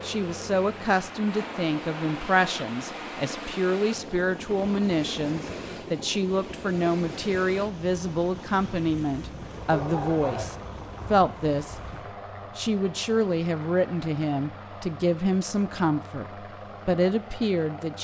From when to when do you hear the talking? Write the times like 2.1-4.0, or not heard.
0.0-11.8, 12.6-17.9.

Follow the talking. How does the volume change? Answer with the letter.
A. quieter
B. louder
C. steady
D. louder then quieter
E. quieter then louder
C.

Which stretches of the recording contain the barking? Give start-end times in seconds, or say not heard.
9.7-11.1.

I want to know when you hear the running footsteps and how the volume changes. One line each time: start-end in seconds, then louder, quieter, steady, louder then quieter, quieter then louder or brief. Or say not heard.
not heard.